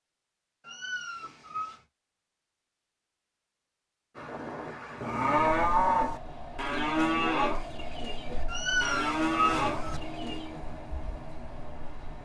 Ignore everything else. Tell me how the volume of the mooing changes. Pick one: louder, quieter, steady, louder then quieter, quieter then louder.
quieter.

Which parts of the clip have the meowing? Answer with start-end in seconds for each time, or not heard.
0.7-1.8, 8.4-10.0.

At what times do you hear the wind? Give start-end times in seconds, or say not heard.
4.2-12.2.